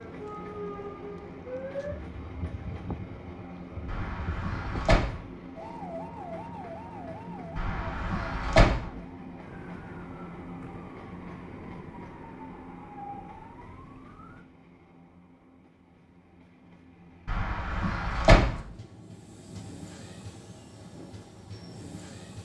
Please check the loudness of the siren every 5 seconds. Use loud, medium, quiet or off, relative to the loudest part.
loud, loud, medium, off, off.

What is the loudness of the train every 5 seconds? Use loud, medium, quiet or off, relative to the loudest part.
loud, loud, loud, medium, loud.